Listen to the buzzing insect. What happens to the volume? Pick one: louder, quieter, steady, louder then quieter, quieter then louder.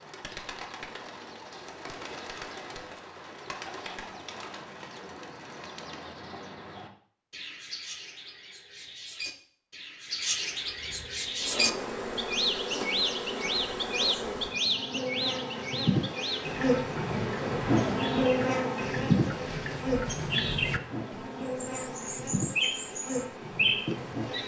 louder then quieter.